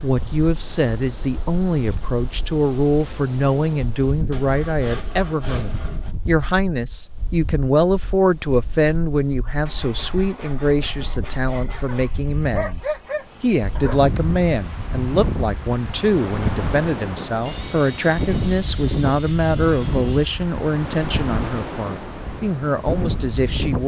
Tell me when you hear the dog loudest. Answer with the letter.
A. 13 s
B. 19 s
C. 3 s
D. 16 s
A.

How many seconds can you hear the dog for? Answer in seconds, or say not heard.
2 s.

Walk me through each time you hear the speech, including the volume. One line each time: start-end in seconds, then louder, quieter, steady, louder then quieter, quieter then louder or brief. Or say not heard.
0.0-23.8 steady.